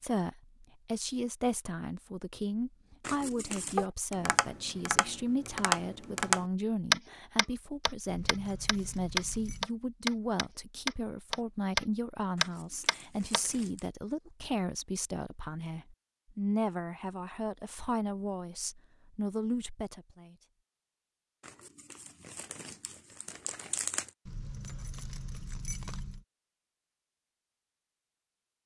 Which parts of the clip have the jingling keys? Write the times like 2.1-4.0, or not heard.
8.1-9.7, 24.2-26.2.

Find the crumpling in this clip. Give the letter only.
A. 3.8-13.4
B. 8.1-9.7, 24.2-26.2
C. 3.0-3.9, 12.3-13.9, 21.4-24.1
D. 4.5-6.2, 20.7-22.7
C.